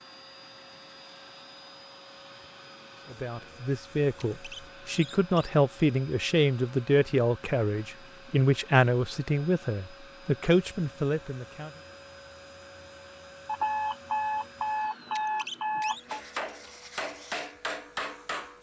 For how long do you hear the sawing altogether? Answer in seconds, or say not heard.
not heard.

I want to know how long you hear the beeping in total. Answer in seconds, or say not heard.
3 s.